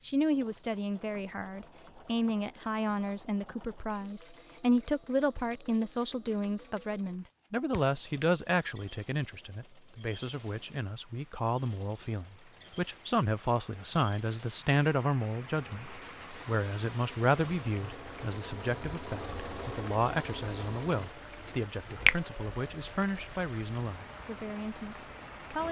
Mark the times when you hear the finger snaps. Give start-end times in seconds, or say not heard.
7.7-8.3.